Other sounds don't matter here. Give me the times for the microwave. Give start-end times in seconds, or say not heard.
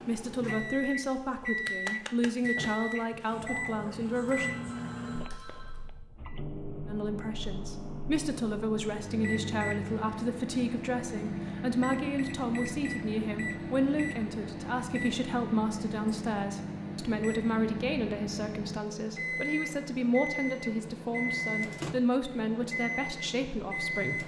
0.0-24.2.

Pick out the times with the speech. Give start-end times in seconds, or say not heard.
0.1-4.5, 6.8-24.2.